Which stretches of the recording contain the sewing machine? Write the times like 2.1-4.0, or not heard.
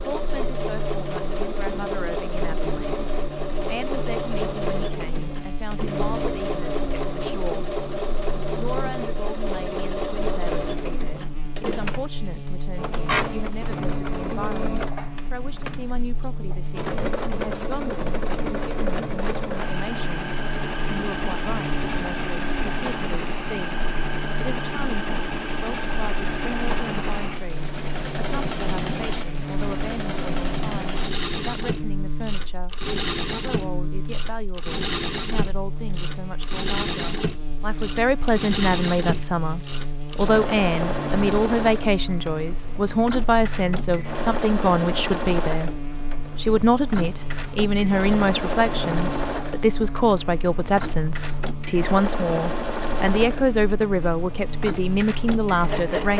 0.0-56.1.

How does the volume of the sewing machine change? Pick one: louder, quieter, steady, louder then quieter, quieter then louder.
steady.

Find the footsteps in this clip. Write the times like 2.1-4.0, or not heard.
not heard.